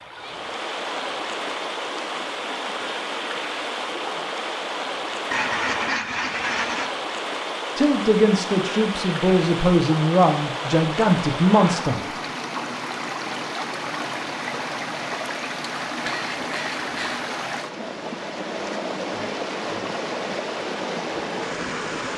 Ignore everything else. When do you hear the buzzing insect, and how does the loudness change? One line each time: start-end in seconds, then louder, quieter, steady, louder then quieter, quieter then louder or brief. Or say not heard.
not heard.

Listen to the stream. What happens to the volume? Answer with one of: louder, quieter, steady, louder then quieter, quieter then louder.
steady.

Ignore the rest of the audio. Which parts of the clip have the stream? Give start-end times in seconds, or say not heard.
0.0-22.1.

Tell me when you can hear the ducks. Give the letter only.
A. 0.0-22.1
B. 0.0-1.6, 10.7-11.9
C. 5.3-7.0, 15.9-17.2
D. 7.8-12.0
C.